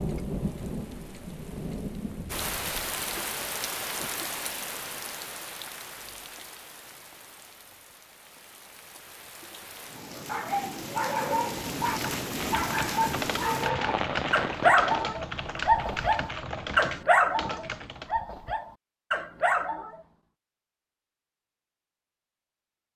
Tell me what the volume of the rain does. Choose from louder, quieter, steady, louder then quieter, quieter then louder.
quieter then louder.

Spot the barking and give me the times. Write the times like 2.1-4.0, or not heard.
10.1-20.1.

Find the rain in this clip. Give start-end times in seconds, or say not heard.
0.0-15.1.